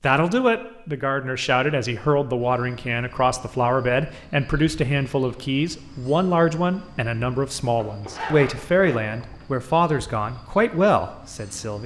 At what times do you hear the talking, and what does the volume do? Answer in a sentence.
The talking can be heard from 0.0 to 11.8 s, at a steady volume.